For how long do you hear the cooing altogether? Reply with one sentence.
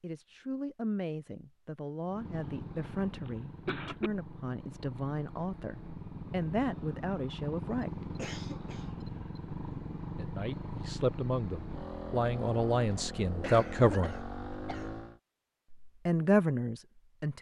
The cooing can't be heard in this clip.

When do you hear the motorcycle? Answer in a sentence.
The motorcycle can be heard from 2.0 to 15.2 s.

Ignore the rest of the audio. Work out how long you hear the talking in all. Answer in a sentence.
You can hear the talking for 14 seconds altogether.